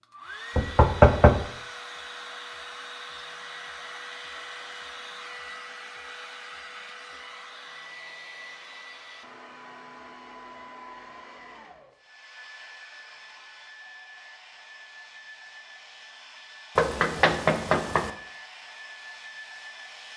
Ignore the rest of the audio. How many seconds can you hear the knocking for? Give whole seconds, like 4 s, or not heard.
2 s.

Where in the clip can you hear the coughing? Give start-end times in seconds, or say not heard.
not heard.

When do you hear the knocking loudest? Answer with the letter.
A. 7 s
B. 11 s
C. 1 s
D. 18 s
C.